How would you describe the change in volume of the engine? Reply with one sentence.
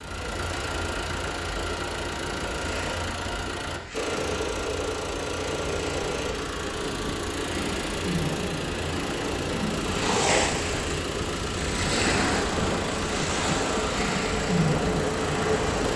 The volume of the engine stays about the same.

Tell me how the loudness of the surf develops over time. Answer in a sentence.
The loudness of the surf goes up.